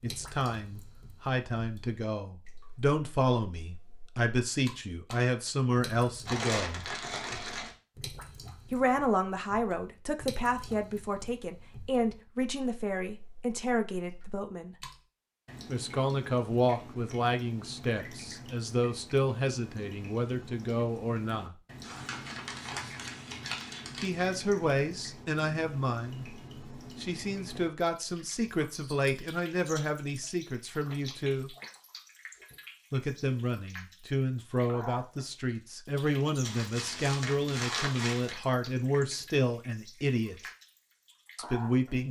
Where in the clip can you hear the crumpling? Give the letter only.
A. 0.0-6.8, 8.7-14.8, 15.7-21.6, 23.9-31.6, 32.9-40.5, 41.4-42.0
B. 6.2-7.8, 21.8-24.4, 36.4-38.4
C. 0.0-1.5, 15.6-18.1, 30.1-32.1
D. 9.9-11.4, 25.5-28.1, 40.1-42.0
B.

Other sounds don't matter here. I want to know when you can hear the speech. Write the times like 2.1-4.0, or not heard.
0.0-6.8, 8.7-14.8, 15.7-21.6, 23.9-31.6, 32.9-40.5, 41.4-42.0.